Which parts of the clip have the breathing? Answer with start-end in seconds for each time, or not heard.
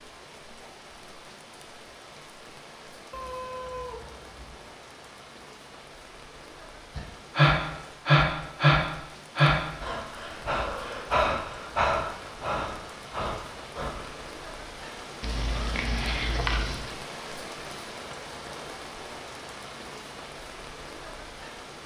7.0-14.2.